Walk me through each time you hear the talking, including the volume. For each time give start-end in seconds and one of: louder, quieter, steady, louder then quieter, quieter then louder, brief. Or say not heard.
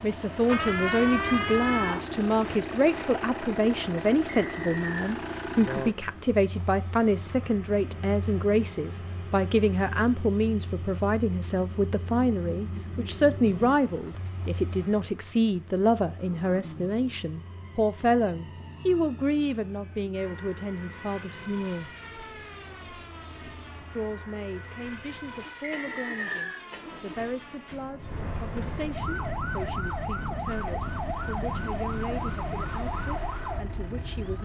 0.0-21.9 steady
23.9-34.4 steady.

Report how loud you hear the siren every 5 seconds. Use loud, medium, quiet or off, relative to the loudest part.
loud, off, off, quiet, quiet, medium, medium.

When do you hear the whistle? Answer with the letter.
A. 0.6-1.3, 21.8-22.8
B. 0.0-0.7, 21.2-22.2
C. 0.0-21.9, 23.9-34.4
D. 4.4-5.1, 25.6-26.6
D.